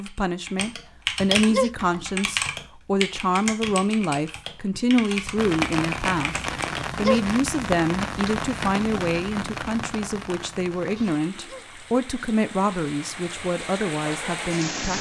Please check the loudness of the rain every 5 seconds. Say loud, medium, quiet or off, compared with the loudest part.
off, loud, medium.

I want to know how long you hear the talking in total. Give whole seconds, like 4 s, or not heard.
14 s.